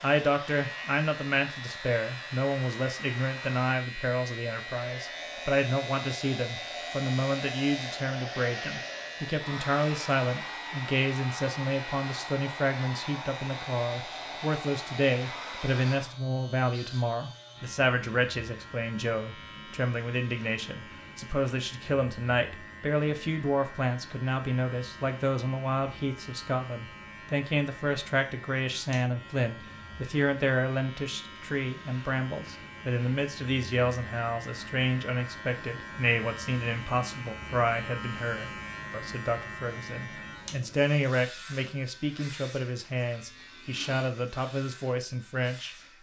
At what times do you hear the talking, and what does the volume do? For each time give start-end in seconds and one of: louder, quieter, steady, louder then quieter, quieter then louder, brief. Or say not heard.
0.0-45.8 steady.